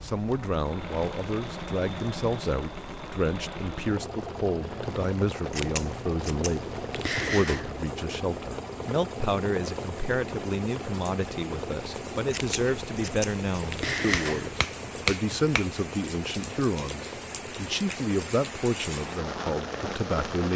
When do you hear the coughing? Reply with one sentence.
The coughing can't be heard in this clip.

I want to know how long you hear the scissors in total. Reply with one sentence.
The scissors can be heard for 5 seconds in total.